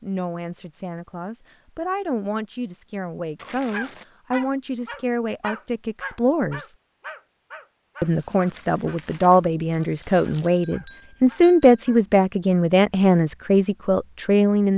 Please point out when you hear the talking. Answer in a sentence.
You can hear the talking from 0.0 to 6.8 s and from 8.0 to 14.7 s.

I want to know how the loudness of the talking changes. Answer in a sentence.
The loudness of the talking goes up.